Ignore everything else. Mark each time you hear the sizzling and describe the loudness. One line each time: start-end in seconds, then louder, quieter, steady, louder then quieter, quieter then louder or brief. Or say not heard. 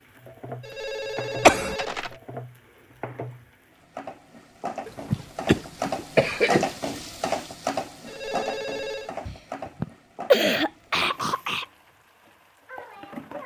0.0-13.4 louder then quieter.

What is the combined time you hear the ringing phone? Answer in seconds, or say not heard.
3 s.